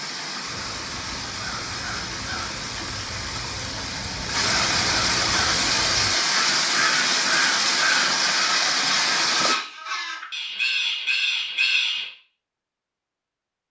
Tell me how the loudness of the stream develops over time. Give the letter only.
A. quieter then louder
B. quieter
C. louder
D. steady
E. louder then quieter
C.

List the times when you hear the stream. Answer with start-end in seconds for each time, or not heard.
0.0-9.6.